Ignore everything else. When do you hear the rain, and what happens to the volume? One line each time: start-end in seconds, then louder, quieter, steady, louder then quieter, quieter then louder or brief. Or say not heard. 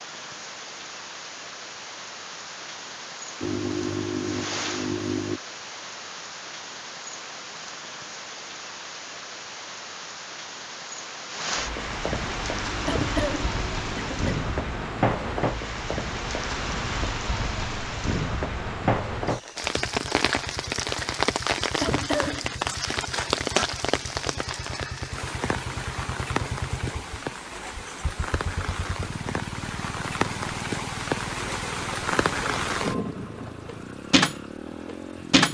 0.0-35.4 louder.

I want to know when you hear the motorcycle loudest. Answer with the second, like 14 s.
4 s.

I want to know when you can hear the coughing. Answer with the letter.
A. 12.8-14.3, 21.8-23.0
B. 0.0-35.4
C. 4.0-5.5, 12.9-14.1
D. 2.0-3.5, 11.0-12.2
A.